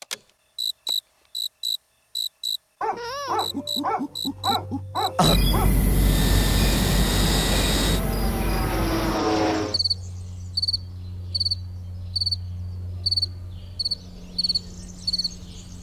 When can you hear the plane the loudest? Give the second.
9 s.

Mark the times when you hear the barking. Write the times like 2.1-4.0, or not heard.
2.8-5.7.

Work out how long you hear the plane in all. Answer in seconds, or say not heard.
4 s.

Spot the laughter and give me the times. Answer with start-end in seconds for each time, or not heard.
not heard.